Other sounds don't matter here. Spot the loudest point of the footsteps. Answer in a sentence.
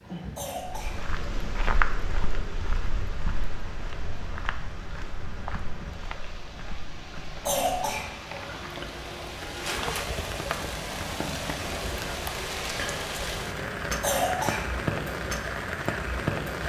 The loudest moment of the footsteps is at 2 seconds.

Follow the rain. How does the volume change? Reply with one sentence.
The volume of the rain goes up.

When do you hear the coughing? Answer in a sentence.
The coughing can be heard from 0.3 to 1.1 s, from 7.5 to 8.1 s and from 14.0 to 14.7 s.